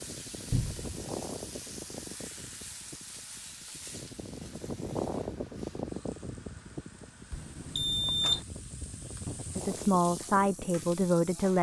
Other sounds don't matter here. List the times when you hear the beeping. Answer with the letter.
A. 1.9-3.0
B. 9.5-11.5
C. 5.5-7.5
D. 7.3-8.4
D.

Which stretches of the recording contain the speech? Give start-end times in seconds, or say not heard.
9.5-11.5.